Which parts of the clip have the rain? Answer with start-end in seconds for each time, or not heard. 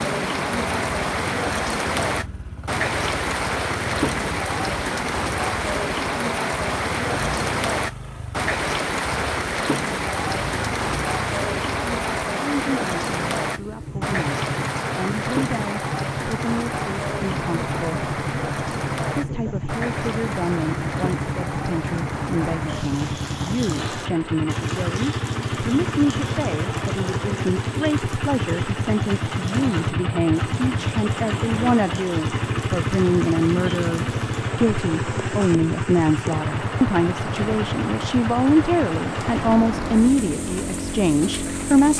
0.0-41.9.